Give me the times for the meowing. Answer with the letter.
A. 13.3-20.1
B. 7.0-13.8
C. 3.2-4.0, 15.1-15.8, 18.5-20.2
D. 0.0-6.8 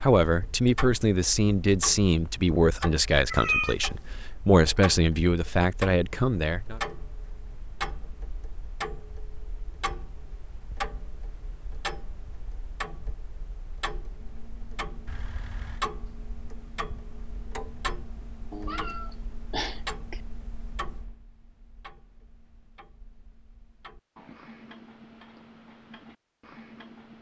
C.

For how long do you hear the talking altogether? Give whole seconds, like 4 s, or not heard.
7 s.